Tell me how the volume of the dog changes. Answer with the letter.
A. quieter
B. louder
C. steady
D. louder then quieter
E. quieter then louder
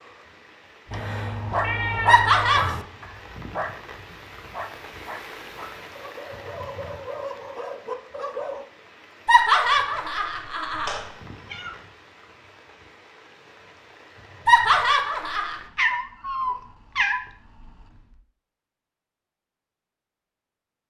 E.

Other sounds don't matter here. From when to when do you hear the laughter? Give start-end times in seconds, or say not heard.
2.0-2.8, 9.2-11.0, 14.4-15.6.